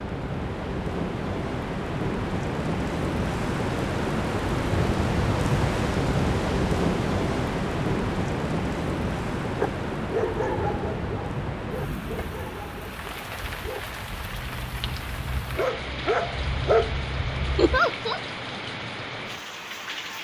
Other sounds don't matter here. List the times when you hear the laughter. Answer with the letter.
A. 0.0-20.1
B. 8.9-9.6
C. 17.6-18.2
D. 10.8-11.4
C.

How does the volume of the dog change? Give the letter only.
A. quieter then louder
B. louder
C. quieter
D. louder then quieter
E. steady
A.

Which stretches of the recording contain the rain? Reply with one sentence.
You can hear the rain from 0.0 to 20.1 s.